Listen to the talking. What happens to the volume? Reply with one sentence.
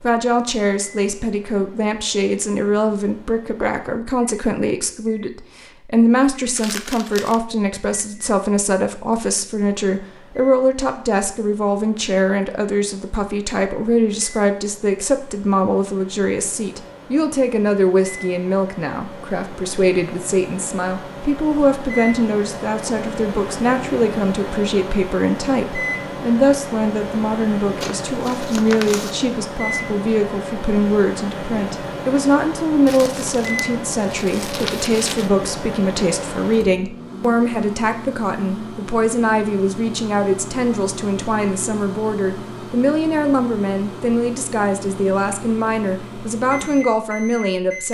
The loudness of the talking stays about the same.